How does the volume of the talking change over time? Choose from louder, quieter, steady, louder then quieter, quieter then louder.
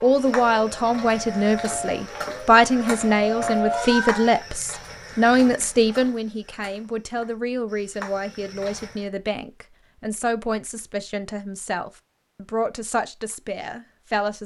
quieter.